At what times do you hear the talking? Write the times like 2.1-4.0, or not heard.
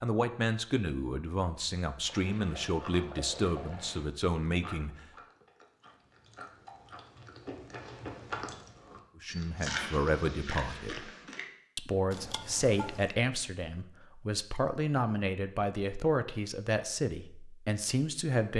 0.0-5.0, 9.2-11.1, 11.8-18.5.